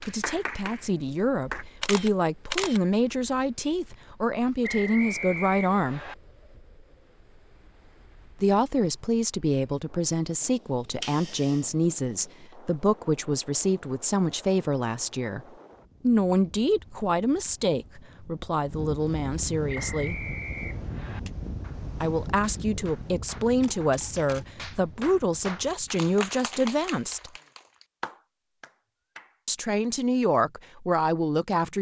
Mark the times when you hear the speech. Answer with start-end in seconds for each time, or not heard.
0.0-6.0, 8.4-20.2, 22.0-27.3, 29.4-31.7.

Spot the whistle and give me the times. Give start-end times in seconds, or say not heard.
4.6-6.2, 19.6-21.2.